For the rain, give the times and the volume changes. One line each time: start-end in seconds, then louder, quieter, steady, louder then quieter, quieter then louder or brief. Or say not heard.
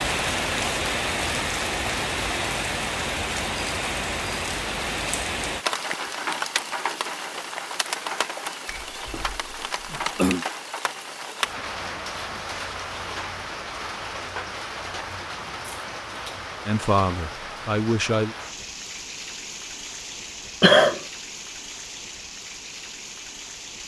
0.0-23.8 quieter.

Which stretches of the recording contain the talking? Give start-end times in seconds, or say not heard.
16.6-18.4.